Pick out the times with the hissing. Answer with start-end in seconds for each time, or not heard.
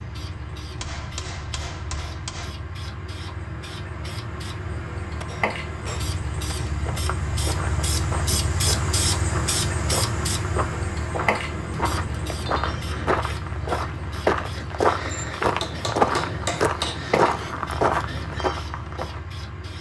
0.0-19.7.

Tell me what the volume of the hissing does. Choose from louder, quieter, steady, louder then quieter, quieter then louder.
louder then quieter.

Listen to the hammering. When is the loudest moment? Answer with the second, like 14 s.
16 s.